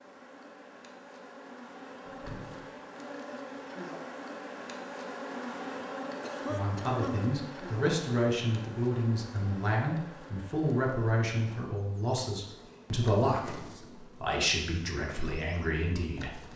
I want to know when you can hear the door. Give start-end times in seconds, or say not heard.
2.0-2.7.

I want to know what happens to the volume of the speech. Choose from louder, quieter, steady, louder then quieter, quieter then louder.
steady.